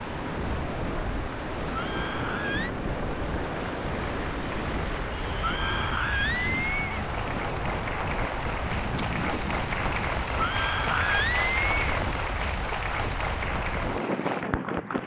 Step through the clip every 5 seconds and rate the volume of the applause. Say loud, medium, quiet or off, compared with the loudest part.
medium, loud, loud.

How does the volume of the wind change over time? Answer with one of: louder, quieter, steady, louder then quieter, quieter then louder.
steady.